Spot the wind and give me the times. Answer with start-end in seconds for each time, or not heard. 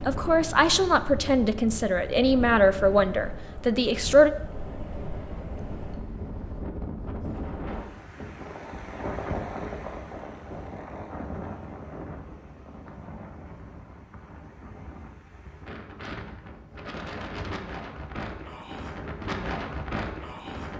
0.0-20.7.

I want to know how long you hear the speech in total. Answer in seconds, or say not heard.
4 s.